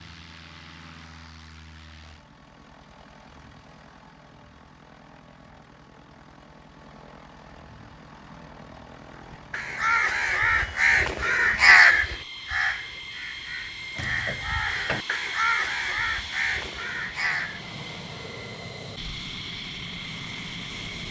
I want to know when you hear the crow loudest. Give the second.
12 s.